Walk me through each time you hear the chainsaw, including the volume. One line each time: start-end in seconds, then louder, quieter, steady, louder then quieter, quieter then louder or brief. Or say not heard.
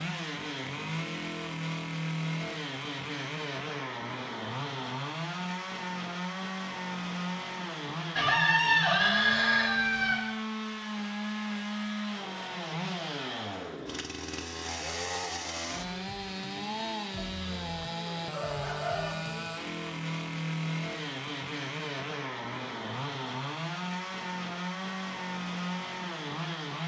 0.0-26.8 steady.